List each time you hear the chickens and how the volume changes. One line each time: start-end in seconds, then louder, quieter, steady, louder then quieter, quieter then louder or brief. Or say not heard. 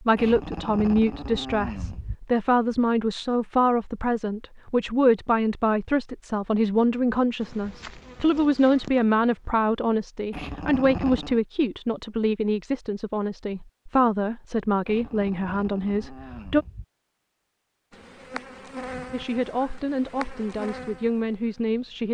not heard.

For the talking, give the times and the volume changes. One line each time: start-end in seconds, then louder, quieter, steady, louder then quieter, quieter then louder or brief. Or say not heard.
0.0-16.6 steady
19.1-22.0 brief.